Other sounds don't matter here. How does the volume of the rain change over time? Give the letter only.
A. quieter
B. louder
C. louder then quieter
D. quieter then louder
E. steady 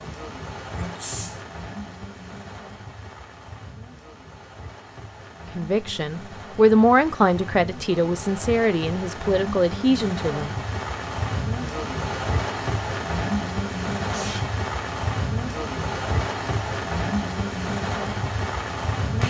B.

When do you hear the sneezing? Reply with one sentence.
The sneezing can be heard from 0.7 to 1.4 s and from 14.0 to 14.6 s.